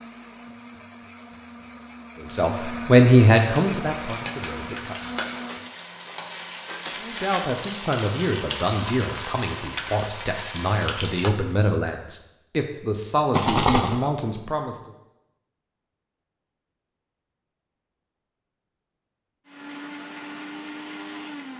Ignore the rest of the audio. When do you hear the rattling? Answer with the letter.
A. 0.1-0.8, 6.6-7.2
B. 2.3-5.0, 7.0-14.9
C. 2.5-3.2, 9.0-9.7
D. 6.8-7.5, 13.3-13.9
D.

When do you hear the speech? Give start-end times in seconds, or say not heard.
2.3-5.0, 7.0-14.9.